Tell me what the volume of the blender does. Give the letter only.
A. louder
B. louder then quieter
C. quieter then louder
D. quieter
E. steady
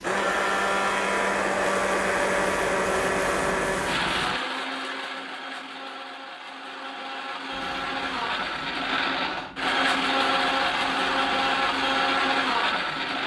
C.